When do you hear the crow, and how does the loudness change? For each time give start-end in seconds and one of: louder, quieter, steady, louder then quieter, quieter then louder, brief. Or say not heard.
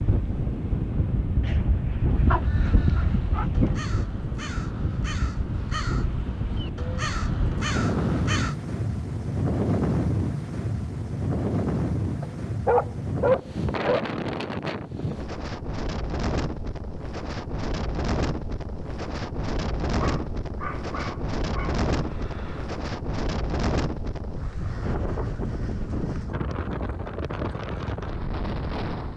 2.2-8.6 louder.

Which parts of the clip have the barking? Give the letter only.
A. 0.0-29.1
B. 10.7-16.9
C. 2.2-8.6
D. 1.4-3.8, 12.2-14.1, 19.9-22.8
D.